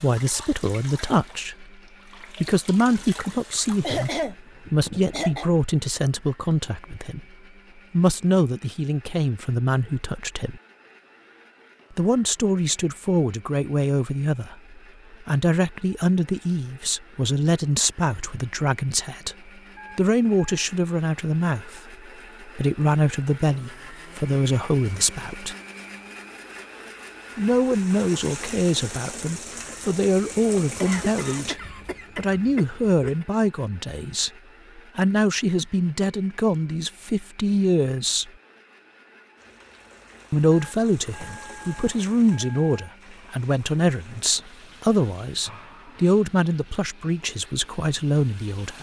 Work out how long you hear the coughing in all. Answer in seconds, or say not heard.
4 s.